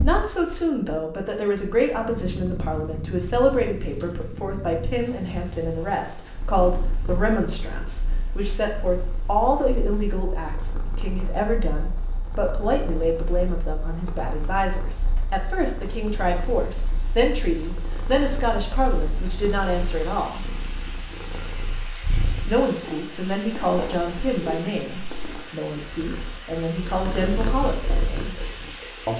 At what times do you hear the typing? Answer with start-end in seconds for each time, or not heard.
not heard.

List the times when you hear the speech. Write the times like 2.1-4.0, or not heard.
0.0-20.4, 22.4-28.4.